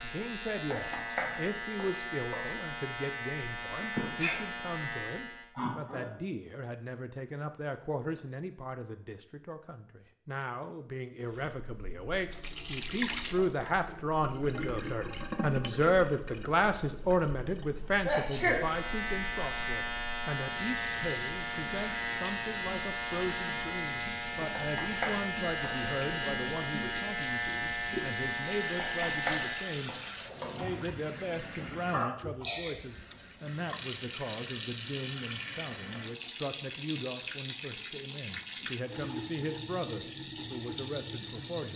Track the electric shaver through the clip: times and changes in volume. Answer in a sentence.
The electric shaver can be heard from 0.0 to 5.5 s, at a steady volume; and from 18.4 to 29.9 s, at a steady volume.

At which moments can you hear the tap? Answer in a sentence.
You can hear the tap from 11.2 to 41.7 s.